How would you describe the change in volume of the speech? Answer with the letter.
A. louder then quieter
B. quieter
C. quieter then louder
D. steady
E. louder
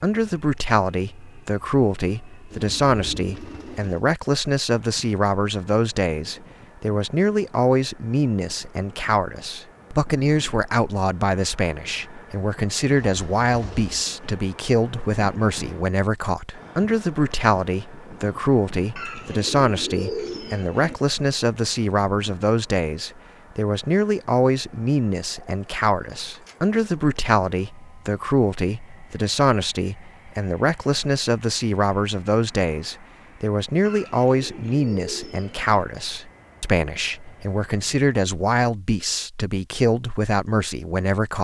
D.